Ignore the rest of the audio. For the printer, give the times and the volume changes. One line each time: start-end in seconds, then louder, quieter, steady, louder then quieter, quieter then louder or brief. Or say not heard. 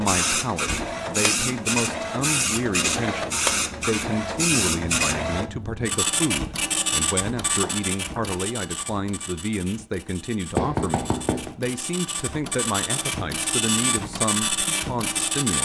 0.0-15.5 quieter then louder.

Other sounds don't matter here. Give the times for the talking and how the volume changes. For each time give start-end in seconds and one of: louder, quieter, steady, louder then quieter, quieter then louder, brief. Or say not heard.
0.0-15.5 steady.